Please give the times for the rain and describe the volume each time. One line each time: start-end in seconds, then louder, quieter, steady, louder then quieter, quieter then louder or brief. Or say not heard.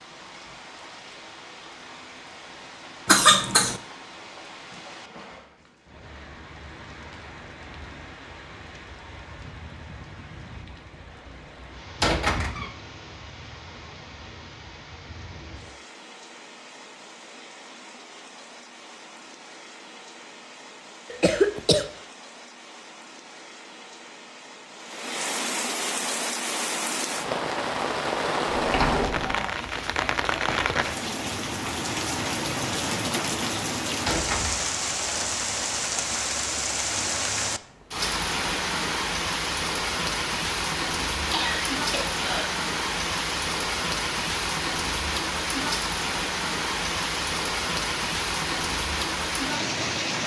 0.0-50.2 louder.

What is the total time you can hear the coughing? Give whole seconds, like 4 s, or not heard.
3 s.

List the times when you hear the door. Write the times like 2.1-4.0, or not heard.
12.0-12.7, 28.4-29.4, 34.0-34.8.